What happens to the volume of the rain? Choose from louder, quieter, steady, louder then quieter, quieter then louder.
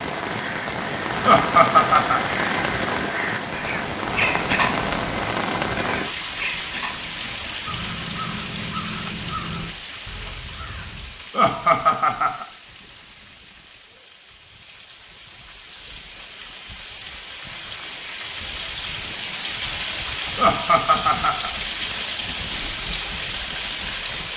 quieter then louder.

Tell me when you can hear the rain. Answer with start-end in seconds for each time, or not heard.
0.0-24.3.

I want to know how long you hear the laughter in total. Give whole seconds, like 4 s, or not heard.
3 s.